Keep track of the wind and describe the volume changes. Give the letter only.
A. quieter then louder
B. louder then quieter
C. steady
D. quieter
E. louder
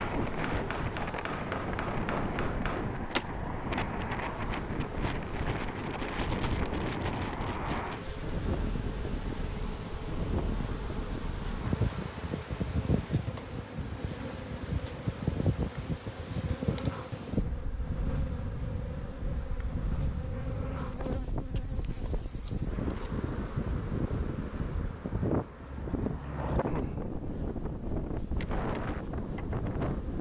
C.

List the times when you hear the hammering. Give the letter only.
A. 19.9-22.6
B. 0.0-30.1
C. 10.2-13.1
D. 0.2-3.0
D.